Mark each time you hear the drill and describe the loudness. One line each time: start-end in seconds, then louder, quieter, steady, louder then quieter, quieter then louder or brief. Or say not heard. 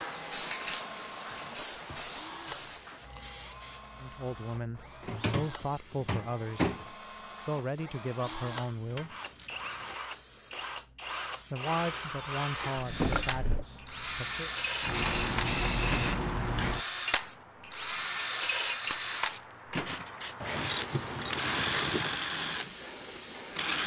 0.0-23.8 louder.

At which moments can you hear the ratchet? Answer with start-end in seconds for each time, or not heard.
1.3-3.4, 8.2-9.9, 20.4-22.2.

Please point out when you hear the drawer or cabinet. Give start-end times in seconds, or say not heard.
5.0-6.8, 12.8-13.7.